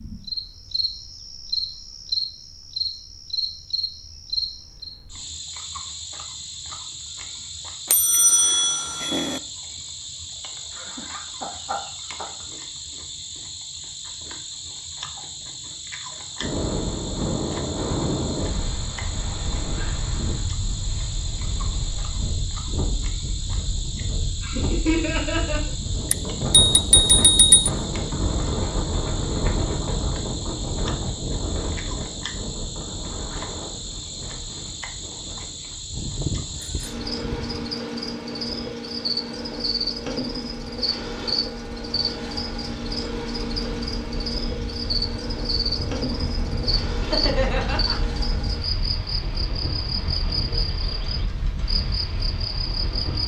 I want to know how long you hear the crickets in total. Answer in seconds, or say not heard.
53 s.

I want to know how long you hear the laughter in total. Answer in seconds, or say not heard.
4 s.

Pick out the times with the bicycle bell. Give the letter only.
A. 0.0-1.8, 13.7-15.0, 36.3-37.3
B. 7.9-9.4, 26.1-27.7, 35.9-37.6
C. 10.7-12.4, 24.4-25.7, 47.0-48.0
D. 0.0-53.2
B.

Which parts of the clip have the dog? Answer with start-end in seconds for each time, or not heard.
not heard.